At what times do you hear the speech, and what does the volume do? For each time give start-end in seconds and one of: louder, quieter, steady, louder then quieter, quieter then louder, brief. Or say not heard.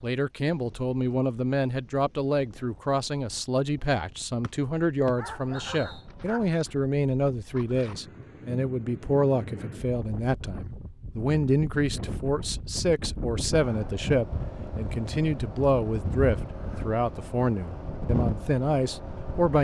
0.0-19.5 steady.